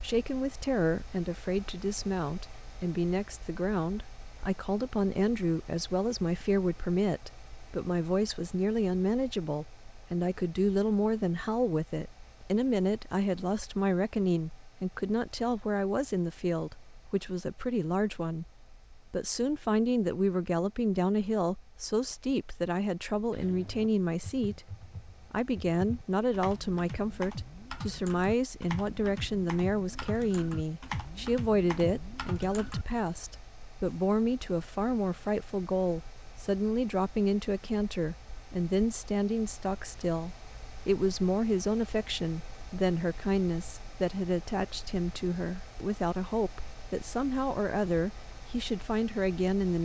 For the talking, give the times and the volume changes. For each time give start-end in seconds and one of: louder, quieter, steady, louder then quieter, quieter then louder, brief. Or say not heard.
0.0-49.8 steady.